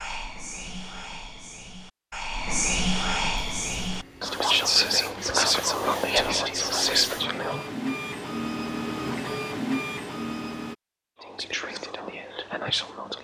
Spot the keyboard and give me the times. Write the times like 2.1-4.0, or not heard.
not heard.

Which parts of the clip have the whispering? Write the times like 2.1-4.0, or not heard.
0.0-7.7, 11.2-13.1.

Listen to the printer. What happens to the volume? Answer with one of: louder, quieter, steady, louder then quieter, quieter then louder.
louder.